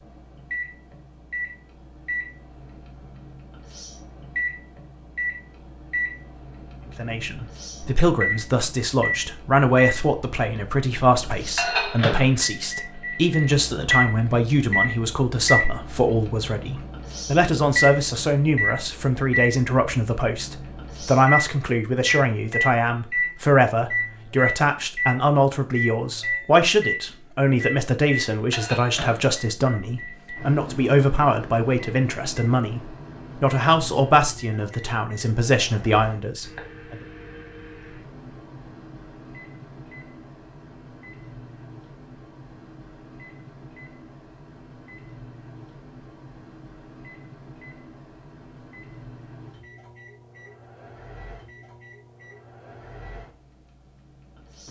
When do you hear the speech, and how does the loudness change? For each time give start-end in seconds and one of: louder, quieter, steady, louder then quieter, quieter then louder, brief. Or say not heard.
7.0-37.0 steady.